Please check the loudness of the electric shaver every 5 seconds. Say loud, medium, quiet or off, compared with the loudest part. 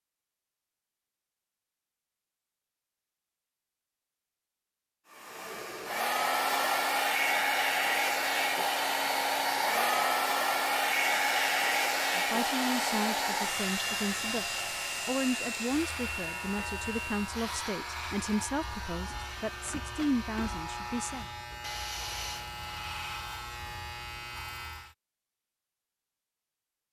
off, off, loud, loud, loud, off.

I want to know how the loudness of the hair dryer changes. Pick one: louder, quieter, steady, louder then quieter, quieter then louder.
quieter.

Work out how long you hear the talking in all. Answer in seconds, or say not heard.
9 s.